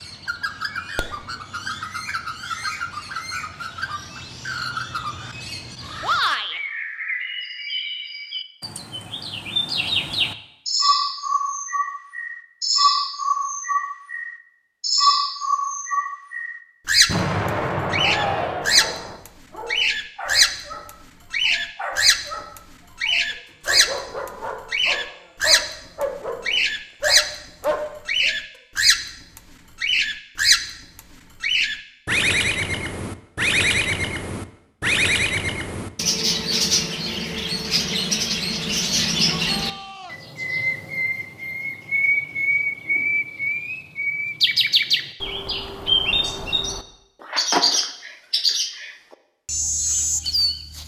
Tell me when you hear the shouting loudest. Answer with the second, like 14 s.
6 s.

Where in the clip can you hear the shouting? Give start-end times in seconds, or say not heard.
6.0-6.6, 18.0-18.9, 39.1-40.2.